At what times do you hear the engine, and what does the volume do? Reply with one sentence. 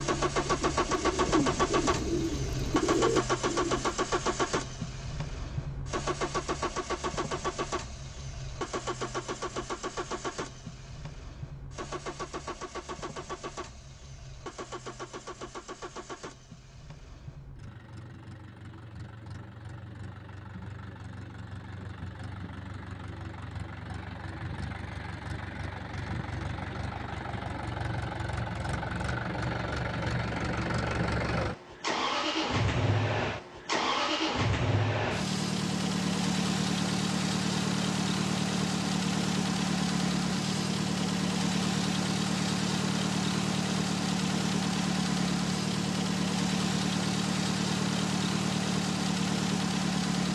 The engine can be heard from 0.0 to 50.3 s, getting quieter then louder.